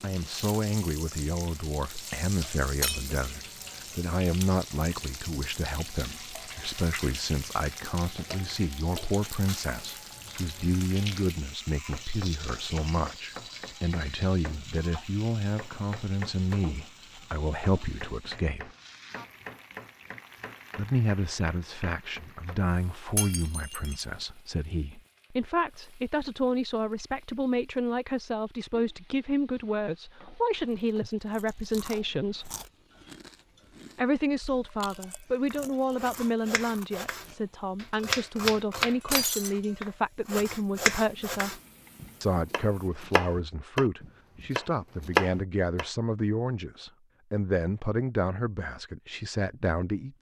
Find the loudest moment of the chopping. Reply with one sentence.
The loudest moment of the chopping is at 45 seconds.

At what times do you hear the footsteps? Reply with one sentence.
The footsteps can't be heard in this clip.